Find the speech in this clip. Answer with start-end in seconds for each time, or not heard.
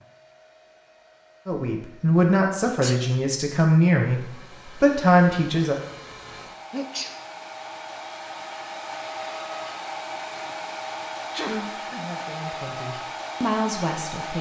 1.4-5.8, 11.4-14.3.